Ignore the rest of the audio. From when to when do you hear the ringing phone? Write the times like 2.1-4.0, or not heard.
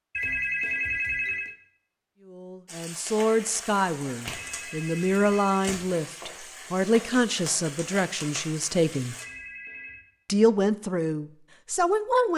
0.1-1.6, 4.3-5.7, 9.2-10.1.